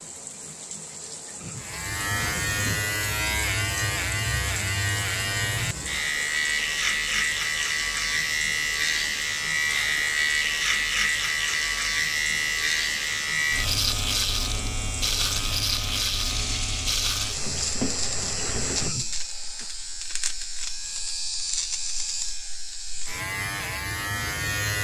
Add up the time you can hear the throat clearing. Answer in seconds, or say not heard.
2 s.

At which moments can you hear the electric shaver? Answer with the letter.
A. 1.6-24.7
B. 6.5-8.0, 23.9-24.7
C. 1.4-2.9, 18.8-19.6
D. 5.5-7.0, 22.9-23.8
A.